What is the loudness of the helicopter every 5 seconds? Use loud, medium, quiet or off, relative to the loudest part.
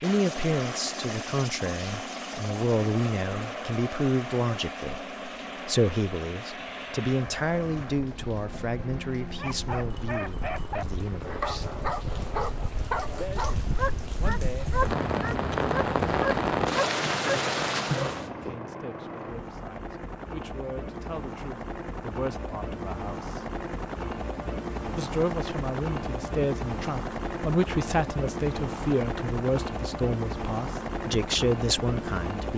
loud, medium, medium, medium, loud, loud, loud.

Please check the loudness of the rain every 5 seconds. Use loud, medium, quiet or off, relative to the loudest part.
quiet, quiet, medium, loud, off, off, off.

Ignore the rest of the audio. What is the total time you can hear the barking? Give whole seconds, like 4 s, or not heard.
9 s.